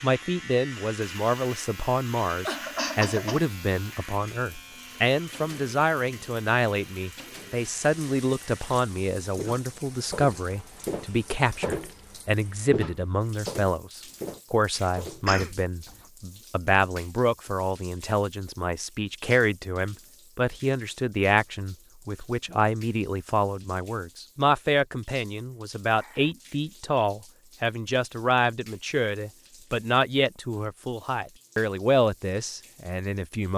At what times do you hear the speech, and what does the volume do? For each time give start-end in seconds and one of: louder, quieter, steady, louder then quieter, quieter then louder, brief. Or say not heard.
0.0-33.5 steady.